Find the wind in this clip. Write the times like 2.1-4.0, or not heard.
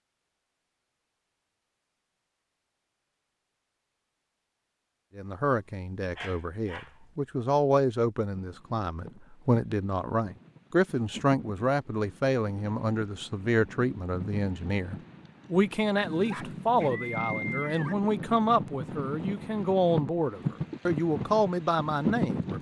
8.3-22.5.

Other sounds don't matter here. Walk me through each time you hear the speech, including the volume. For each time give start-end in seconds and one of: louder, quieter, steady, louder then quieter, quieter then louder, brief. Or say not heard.
5.2-22.5 steady.